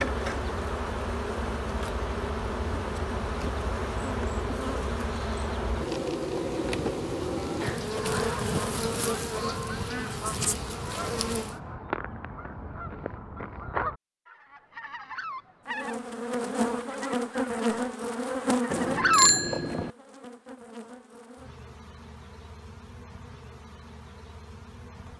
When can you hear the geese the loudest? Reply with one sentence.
The loudest moment of the geese is at 19 seconds.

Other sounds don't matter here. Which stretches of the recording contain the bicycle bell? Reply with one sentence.
You can hear the bicycle bell from 18.7 to 19.9 s.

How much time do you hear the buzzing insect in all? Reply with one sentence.
The buzzing insect can be heard for 21 seconds in total.